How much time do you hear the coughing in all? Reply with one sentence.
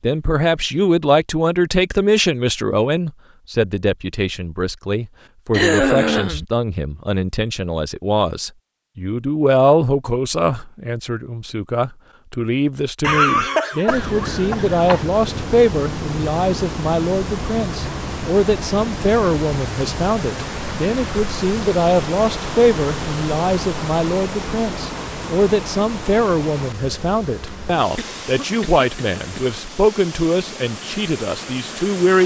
The coughing can be heard for 5 seconds in total.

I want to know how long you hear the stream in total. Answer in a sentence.
The stream can be heard for 18 seconds in total.